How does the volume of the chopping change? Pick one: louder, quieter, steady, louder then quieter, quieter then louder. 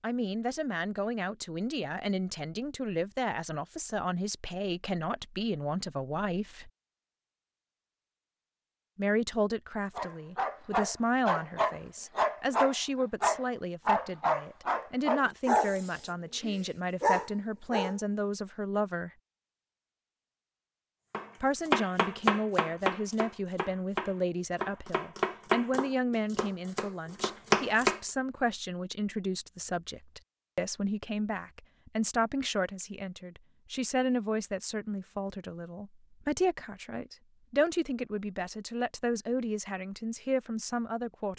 quieter then louder.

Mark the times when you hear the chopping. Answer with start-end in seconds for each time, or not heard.
21.1-28.0.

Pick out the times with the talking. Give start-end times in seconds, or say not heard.
0.0-6.7, 8.9-19.1, 21.4-41.3.